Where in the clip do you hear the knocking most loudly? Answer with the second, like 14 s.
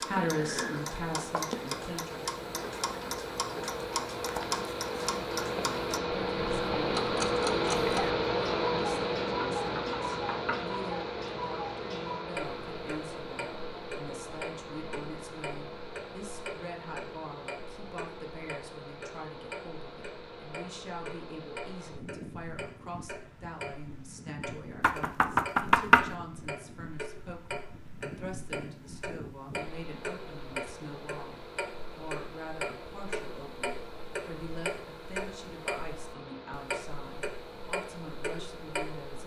26 s.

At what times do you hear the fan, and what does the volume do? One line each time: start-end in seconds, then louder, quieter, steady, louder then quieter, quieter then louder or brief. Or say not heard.
0.0-39.2 quieter.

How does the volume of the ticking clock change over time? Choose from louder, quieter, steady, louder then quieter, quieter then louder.
quieter then louder.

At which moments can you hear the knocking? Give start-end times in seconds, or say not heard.
9.6-10.6, 24.8-26.1.